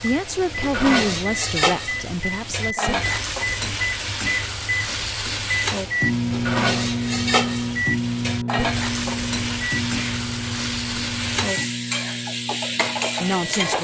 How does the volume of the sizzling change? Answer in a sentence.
The volume of the sizzling stays about the same.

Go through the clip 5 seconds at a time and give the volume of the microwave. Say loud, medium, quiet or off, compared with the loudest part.
medium, loud, medium.